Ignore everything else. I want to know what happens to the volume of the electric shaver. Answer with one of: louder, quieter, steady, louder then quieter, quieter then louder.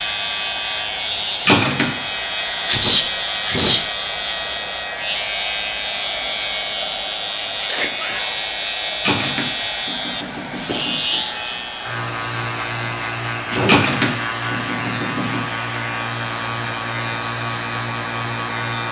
steady.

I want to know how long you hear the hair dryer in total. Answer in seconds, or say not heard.
19 s.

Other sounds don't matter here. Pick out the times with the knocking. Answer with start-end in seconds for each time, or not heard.
1.4-1.9, 9.0-11.0, 13.7-15.4.